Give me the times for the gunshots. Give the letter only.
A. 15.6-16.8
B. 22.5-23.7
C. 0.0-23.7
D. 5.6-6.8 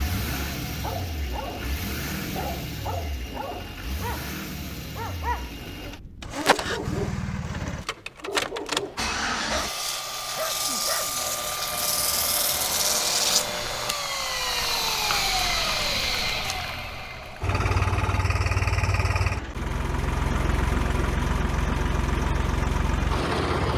D.